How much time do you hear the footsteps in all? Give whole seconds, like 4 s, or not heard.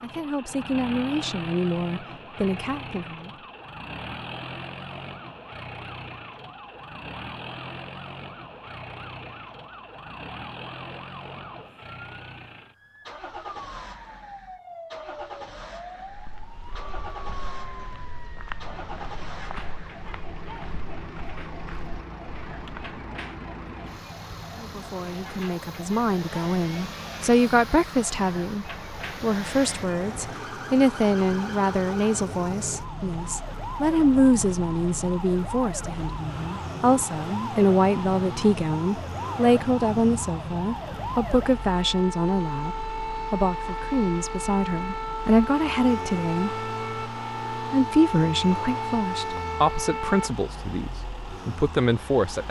7 s.